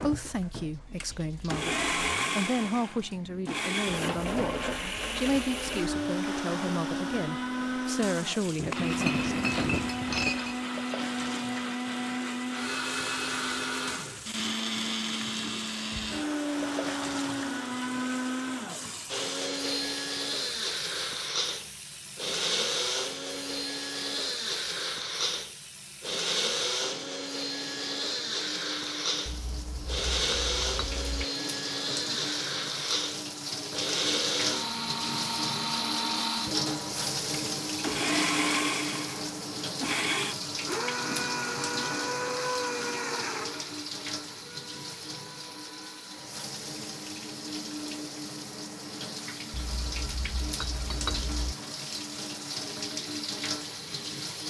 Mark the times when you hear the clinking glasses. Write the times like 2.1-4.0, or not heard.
8.6-10.6, 29.2-31.2, 49.5-51.5.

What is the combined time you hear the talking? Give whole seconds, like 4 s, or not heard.
9 s.